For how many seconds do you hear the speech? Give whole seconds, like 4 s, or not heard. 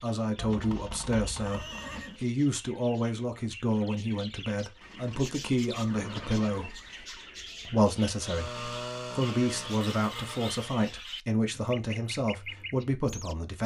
13 s.